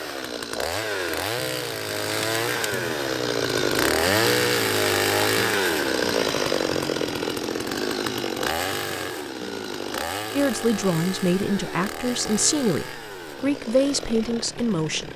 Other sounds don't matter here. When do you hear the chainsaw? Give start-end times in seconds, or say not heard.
0.0-15.1.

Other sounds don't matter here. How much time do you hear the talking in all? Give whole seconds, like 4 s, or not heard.
5 s.